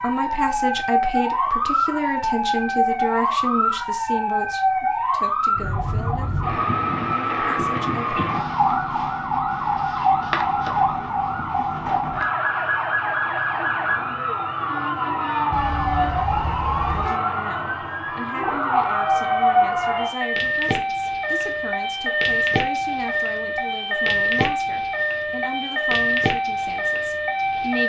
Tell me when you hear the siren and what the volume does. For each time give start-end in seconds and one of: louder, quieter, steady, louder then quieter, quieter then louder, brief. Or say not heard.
0.0-27.8 steady.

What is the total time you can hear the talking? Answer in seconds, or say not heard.
19 s.